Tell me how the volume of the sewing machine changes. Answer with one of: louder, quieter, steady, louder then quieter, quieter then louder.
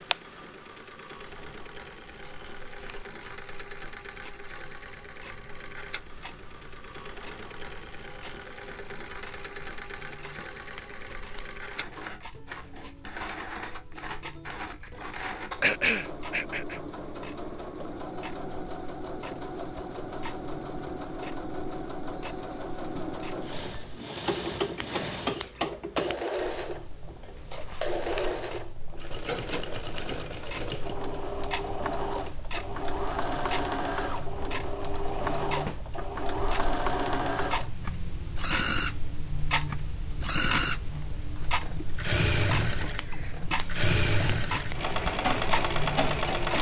louder.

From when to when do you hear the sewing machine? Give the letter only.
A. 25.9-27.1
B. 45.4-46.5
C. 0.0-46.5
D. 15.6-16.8
C.